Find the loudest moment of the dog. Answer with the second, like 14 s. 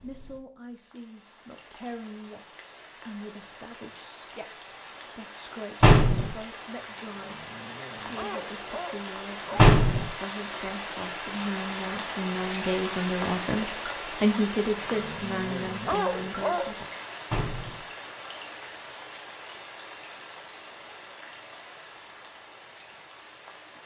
16 s.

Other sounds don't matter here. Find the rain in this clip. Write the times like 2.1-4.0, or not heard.
0.0-23.8.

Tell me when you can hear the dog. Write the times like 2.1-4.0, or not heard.
7.1-9.7, 14.8-16.8.